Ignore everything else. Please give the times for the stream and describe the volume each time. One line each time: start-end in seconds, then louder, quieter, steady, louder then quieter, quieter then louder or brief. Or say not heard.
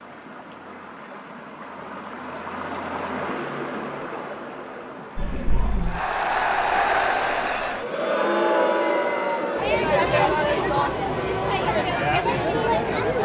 0.0-9.7 louder then quieter.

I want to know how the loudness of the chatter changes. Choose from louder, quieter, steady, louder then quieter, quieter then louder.
steady.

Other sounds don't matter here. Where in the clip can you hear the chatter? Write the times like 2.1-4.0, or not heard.
5.2-13.2.